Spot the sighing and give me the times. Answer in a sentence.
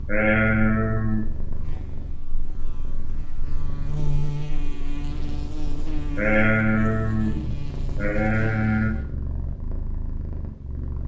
The sighing can be heard from 0.1 to 1.3 s and from 6.2 to 8.9 s.